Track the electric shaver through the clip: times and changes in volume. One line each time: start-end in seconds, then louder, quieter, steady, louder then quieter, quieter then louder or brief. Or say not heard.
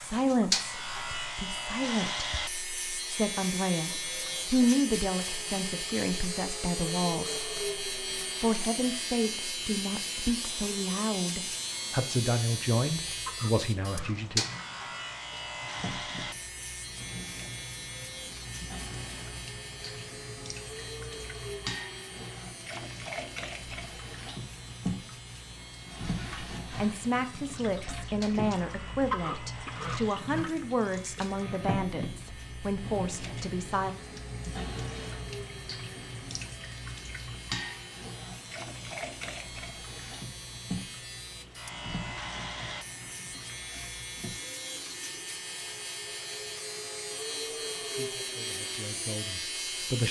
0.0-50.0 quieter then louder.